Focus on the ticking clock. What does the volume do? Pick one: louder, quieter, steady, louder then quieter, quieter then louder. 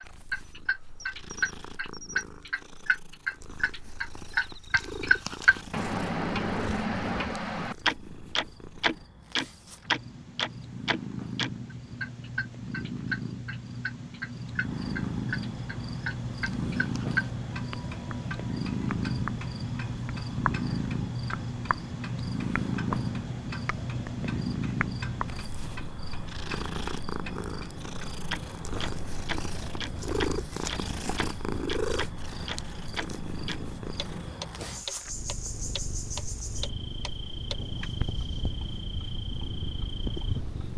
quieter.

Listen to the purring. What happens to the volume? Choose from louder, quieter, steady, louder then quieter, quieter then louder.
louder then quieter.